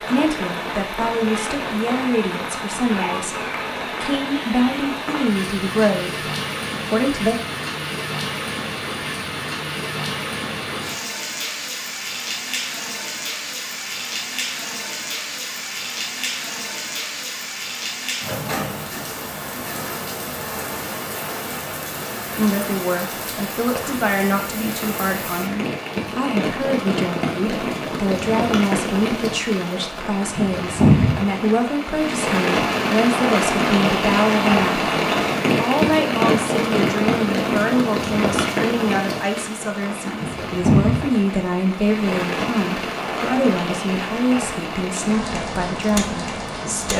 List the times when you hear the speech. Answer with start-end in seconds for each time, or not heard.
0.0-7.4, 22.3-46.9.